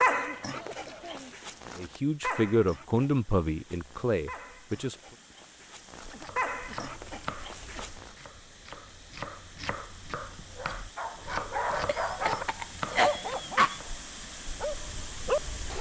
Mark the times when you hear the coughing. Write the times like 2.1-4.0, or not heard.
0.1-1.4, 6.1-8.0, 11.8-13.8.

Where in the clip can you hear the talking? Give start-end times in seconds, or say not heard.
1.8-5.0.